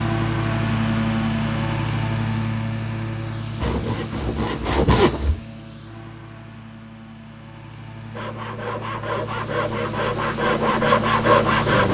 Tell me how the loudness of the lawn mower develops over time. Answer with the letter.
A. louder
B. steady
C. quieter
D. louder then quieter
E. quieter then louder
E.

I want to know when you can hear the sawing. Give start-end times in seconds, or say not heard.
3.6-5.4, 8.2-11.8.